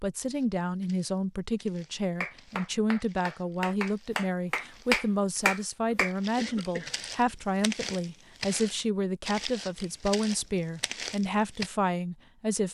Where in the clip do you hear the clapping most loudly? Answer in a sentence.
The loudest moment of the clapping is at 5 seconds.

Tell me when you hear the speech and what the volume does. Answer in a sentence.
You can hear the speech from 0.0 to 12.6 s, at a steady volume.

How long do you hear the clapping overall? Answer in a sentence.
The clapping can be heard for 4 seconds in total.